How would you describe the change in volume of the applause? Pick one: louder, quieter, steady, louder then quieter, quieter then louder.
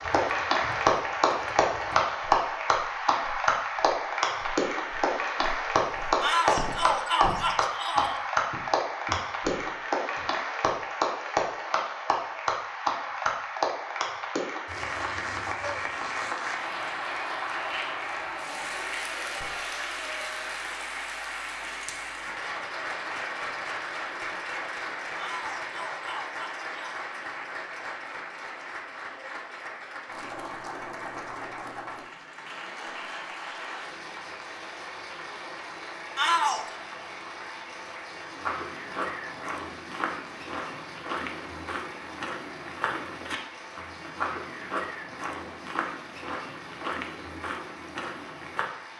quieter.